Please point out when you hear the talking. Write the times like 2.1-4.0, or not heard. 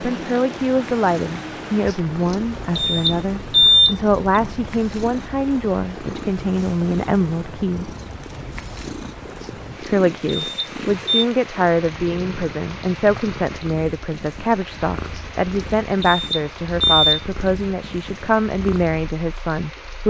0.0-7.9, 9.8-20.0.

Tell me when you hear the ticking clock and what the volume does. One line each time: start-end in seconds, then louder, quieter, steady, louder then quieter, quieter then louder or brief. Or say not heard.
not heard.